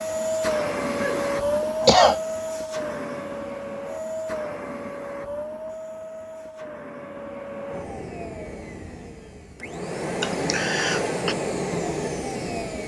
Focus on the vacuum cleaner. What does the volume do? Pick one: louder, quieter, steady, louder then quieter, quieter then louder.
quieter then louder.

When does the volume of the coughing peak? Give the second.
2 s.